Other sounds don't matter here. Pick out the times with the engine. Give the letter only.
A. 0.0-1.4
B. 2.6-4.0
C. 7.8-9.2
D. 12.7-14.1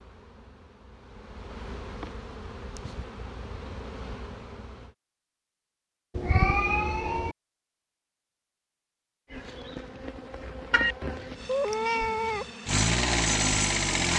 D.